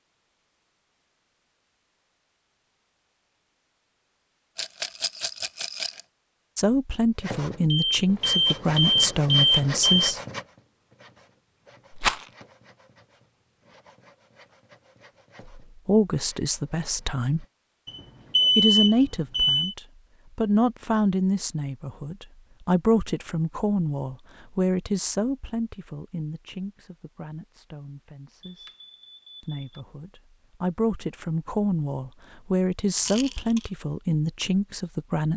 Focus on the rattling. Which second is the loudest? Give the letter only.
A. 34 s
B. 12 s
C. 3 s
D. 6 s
B.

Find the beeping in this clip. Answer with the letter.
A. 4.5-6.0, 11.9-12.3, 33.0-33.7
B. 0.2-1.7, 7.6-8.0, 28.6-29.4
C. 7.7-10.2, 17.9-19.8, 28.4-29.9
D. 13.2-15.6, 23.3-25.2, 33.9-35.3
C.